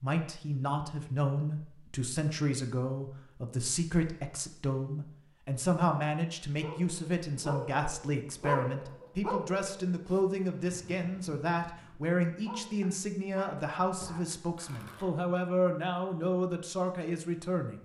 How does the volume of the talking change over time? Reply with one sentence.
The loudness of the talking stays about the same.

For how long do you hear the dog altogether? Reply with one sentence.
You can hear the dog for 8 seconds altogether.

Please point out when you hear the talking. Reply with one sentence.
The talking can be heard from 0.0 to 17.8 s.